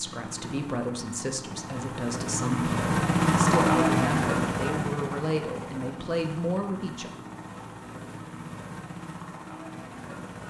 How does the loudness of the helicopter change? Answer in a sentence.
The loudness of the helicopter goes up, then down.